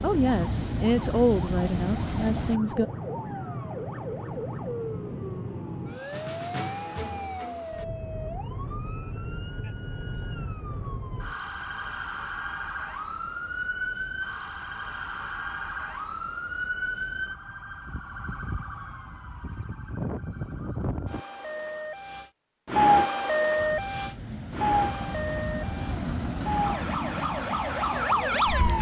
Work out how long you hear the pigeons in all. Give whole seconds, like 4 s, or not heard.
not heard.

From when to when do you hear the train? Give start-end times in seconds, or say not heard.
0.0-2.6, 23.6-28.6.